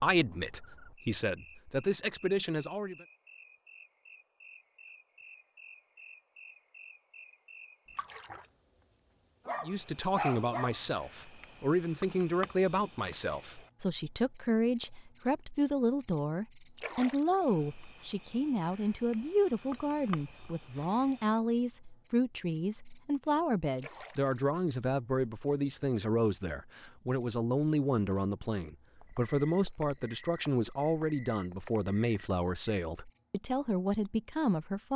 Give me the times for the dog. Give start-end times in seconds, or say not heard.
9.4-10.8.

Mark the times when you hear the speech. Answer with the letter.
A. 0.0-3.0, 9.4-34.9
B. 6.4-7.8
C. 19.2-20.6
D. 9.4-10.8
A.